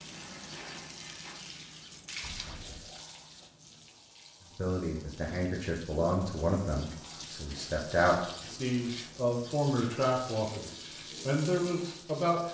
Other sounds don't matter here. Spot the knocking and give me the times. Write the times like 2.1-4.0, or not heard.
2.2-2.9.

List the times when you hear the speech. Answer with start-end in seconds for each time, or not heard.
4.5-12.4.